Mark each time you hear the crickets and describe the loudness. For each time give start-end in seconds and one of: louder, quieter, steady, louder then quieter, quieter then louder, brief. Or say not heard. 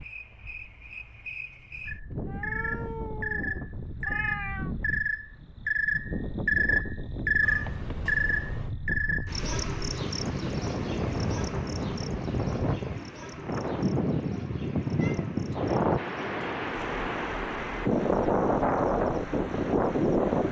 0.0-20.4 louder then quieter.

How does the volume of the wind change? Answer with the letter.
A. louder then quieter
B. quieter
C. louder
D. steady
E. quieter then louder
C.